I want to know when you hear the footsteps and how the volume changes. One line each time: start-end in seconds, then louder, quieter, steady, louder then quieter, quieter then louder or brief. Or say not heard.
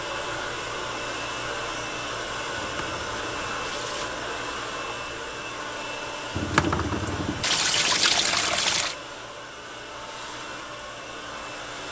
not heard.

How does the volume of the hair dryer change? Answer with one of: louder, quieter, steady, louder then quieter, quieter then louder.
quieter.